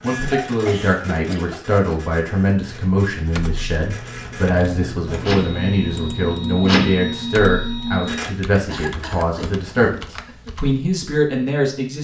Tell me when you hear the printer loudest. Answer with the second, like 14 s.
7 s.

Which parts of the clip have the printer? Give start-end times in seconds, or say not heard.
0.0-8.3.